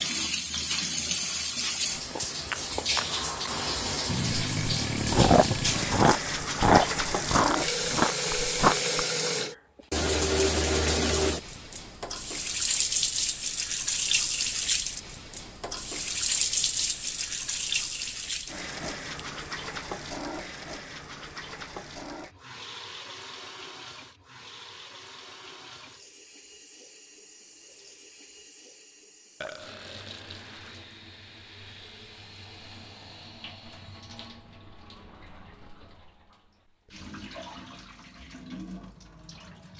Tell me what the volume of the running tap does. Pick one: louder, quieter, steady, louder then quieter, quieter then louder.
quieter.